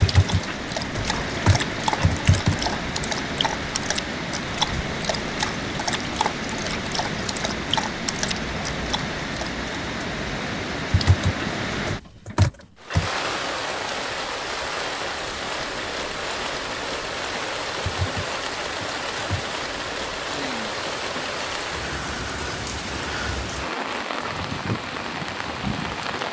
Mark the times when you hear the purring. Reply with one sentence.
The purring can't be heard in this clip.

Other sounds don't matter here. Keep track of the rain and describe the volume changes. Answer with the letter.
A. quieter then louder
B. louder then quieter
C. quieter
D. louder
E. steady
E.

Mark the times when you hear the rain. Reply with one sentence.
You can hear the rain from 0.0 to 26.2 s.